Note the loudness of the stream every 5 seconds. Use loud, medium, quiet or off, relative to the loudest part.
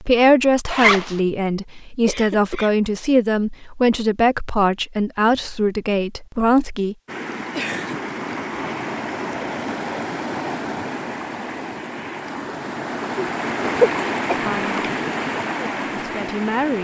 off, loud, loud, loud.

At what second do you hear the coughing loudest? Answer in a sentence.
The loudest moment of the coughing is at 14 seconds.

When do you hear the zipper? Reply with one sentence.
The zipper can be heard from 0.7 to 1.1 s.